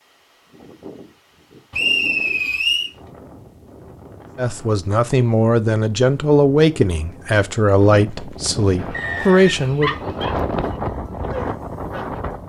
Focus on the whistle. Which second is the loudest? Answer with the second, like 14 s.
2 s.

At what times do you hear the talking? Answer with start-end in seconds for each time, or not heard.
4.3-9.9.